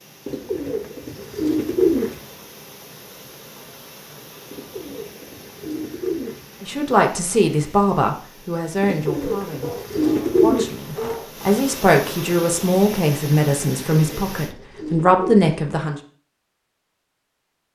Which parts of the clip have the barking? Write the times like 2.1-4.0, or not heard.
9.6-11.3.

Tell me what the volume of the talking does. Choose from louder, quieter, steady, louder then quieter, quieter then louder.
quieter then louder.